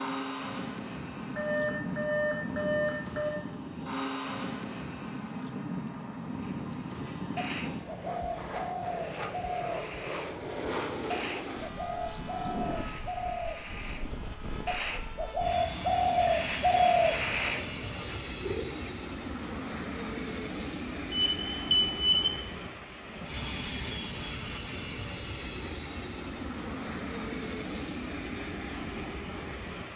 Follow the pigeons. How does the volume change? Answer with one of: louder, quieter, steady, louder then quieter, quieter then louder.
louder.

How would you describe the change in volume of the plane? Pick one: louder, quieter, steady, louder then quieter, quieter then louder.
steady.